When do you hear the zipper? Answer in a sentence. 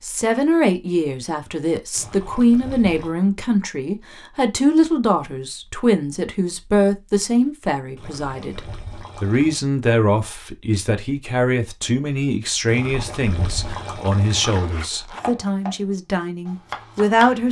The zipper can be heard from 14.4 to 15.2 s.